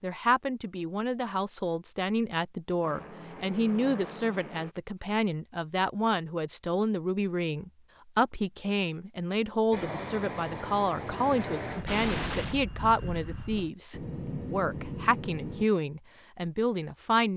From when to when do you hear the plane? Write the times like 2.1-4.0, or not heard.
2.8-4.8, 9.7-15.7.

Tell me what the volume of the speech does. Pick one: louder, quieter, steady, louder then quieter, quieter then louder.
steady.